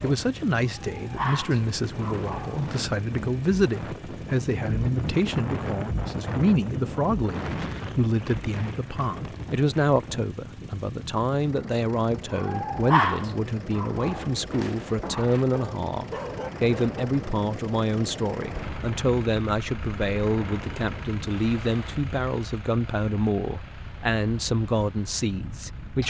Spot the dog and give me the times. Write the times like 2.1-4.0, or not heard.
0.0-2.6, 12.3-17.1.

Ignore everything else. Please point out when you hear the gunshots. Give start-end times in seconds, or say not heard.
not heard.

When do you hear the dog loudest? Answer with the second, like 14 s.
13 s.